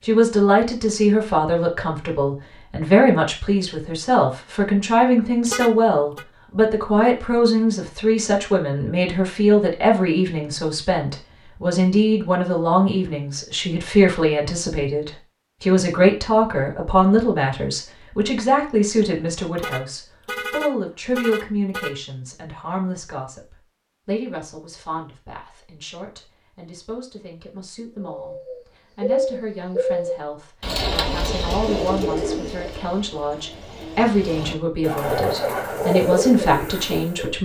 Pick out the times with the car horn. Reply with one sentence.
The car horn can be heard from 5.5 to 6.2 s and from 19.6 to 22.0 s.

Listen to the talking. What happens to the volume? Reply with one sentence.
The loudness of the talking goes down, then up.